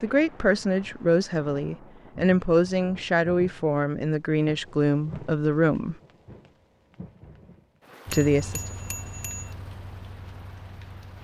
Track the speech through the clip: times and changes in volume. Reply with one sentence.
You can hear the speech from 0.0 to 6.0 s, at a steady volume; and briefly from 8.1 to 8.6 s.